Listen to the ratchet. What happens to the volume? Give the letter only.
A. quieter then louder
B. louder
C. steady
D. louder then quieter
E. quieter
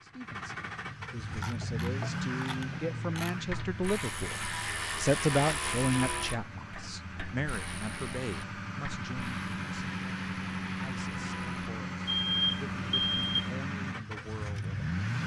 D.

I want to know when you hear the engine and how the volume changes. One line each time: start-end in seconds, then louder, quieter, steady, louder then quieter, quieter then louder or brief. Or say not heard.
0.0-15.2 quieter then louder.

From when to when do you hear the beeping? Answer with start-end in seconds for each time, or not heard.
12.1-13.5.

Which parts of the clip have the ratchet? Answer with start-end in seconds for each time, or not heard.
1.2-11.8.